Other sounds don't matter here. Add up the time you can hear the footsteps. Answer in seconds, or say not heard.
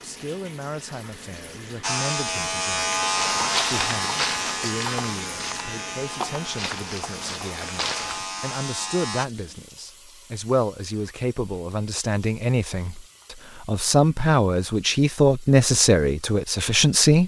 5 s.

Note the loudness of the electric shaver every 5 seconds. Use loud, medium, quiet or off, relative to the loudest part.
loud, medium, off, off.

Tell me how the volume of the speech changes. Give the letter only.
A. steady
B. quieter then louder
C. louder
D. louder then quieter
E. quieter
C.